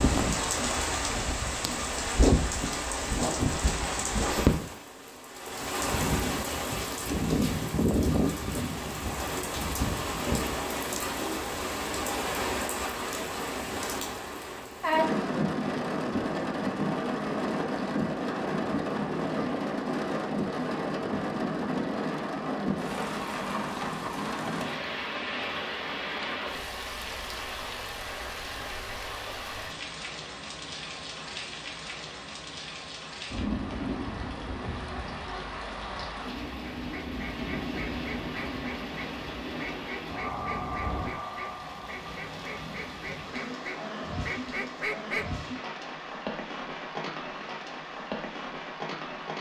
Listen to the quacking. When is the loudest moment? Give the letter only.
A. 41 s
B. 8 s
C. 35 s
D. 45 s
D.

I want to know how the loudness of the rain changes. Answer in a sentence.
The loudness of the rain goes down.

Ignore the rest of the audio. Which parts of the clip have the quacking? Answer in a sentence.
You can hear the quacking from 36.9 to 45.2 s.